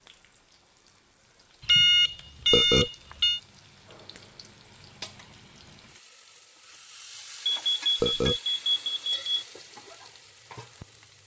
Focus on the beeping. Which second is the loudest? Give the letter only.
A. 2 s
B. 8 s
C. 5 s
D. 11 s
A.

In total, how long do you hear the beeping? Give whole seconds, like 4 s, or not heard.
4 s.